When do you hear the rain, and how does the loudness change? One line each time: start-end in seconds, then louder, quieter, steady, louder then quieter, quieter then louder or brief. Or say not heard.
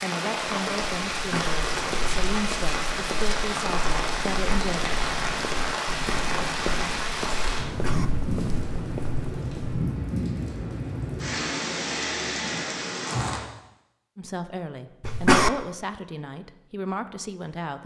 0.0-13.4 steady.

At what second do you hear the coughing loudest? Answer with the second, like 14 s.
15 s.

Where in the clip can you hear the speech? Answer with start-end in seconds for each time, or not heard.
0.0-4.8, 14.2-17.8.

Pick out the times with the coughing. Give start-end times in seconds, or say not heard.
1.1-1.6, 7.7-8.1, 15.0-15.5.